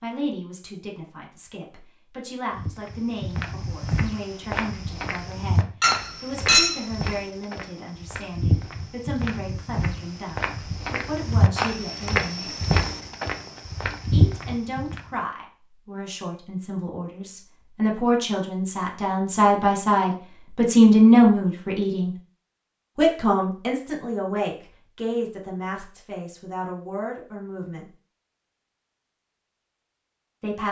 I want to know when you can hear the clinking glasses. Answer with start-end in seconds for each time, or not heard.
5.8-6.8.